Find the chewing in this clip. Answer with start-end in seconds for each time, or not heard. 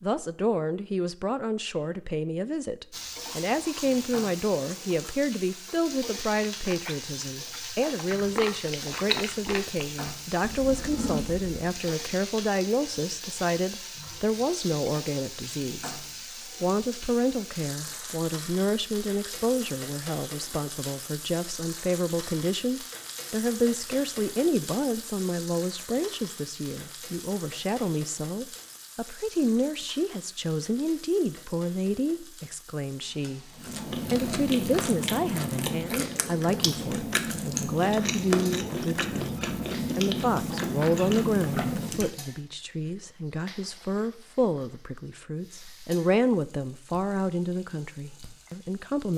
3.1-11.7, 33.5-42.1.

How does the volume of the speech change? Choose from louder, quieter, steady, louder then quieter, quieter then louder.
steady.